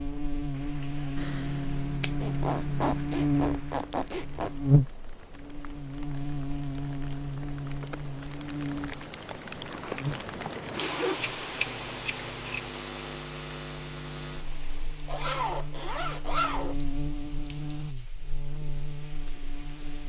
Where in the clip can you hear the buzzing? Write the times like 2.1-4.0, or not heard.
0.0-20.0.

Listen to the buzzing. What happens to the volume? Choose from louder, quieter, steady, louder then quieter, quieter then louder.
quieter.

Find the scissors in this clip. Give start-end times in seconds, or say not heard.
1.1-3.1, 11.2-12.7.